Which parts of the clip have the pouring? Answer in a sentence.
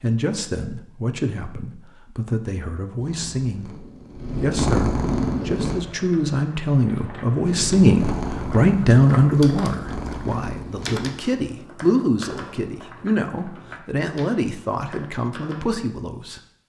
The pouring can't be heard in this clip.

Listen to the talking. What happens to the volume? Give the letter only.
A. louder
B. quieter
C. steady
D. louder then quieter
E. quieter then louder
D.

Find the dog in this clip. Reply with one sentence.
The dog can't be heard in this clip.